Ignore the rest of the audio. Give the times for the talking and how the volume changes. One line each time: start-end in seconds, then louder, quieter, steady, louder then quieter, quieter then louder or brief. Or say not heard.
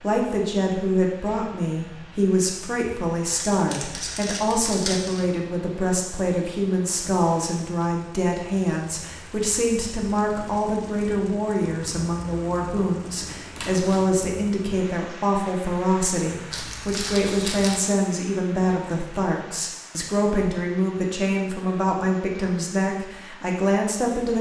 0.0-24.3 steady.